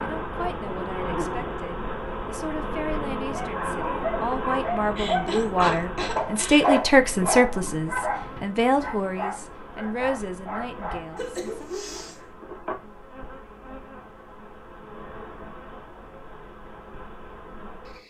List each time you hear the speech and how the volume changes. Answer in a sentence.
The speech can be heard from 0.0 to 11.8 s, getting louder then quieter.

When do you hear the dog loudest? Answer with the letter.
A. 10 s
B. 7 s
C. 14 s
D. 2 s
B.